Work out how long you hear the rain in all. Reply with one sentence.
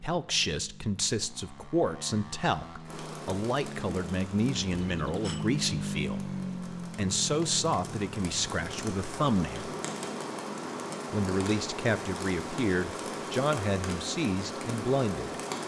The rain can be heard for 13 seconds in total.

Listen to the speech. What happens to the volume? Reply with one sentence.
The volume of the speech stays about the same.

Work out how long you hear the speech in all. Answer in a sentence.
The speech can be heard for 14 seconds in total.